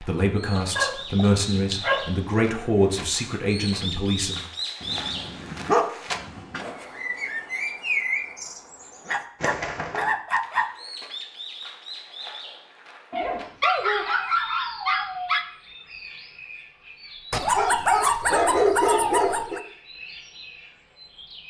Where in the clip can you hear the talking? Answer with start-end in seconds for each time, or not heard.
0.0-4.5.